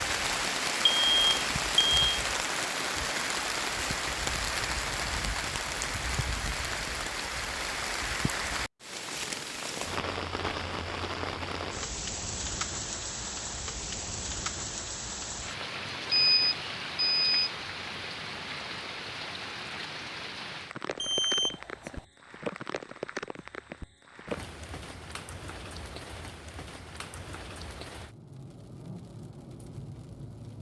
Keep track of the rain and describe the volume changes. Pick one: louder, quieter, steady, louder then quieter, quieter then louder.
quieter.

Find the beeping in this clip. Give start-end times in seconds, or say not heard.
0.9-2.0, 16.1-17.5, 20.9-22.1.